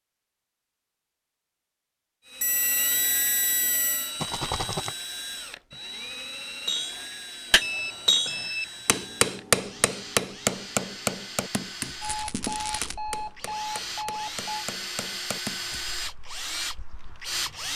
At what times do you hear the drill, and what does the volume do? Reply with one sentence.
You can hear the drill from 2.2 to 17.7 s, getting quieter then louder.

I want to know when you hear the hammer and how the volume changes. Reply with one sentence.
You can hear the hammer from 6.7 to 15.8 s, getting quieter.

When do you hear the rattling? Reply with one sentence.
You can hear the rattling from 4.2 to 5.0 s and from 12.0 to 12.9 s.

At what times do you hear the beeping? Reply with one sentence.
You can hear the beeping from 2.4 to 4.1 s, from 7.6 to 8.8 s and from 12.0 to 14.7 s.